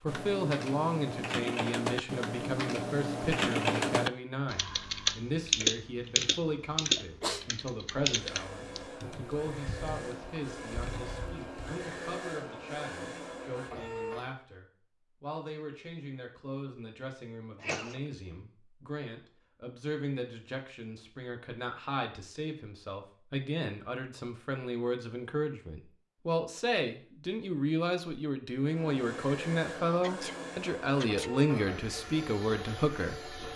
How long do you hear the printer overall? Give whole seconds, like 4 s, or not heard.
11 s.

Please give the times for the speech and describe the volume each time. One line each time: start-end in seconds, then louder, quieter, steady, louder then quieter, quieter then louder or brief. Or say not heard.
0.0-33.4 quieter then louder.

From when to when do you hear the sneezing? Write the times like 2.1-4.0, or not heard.
7.0-7.5, 17.6-18.1, 29.7-31.3.